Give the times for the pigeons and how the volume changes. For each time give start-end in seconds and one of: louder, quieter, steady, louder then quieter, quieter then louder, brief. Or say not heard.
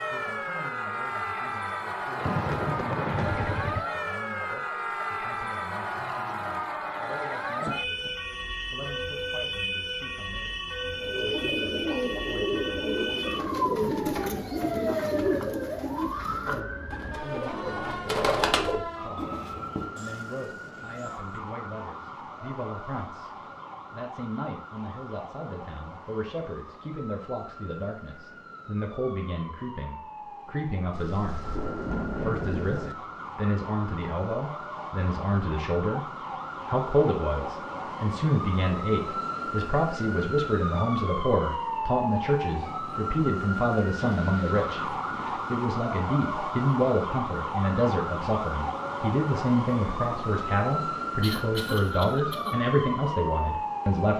10.9-19.9 quieter then louder.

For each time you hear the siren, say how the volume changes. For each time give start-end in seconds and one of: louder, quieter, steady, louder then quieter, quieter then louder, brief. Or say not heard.
0.0-54.1 quieter then louder.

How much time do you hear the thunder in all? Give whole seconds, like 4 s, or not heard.
5 s.